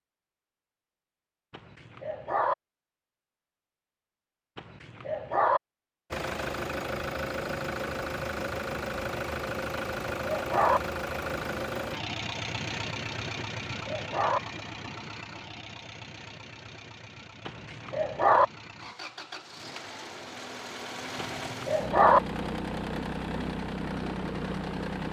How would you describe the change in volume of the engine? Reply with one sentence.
The volume of the engine goes down, then up.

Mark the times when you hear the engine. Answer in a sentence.
You can hear the engine from 6.1 to 25.0 s.